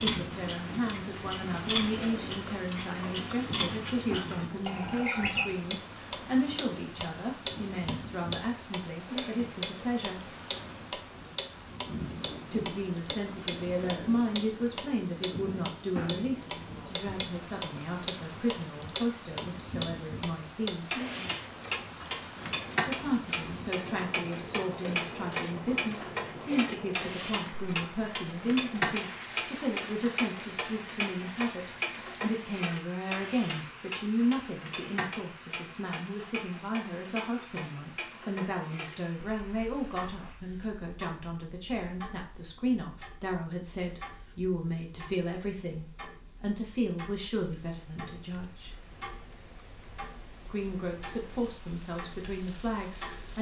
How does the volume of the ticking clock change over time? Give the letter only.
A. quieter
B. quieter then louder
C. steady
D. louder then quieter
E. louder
A.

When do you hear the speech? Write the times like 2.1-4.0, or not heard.
0.0-10.3, 12.5-21.0, 22.9-48.8, 50.5-53.3.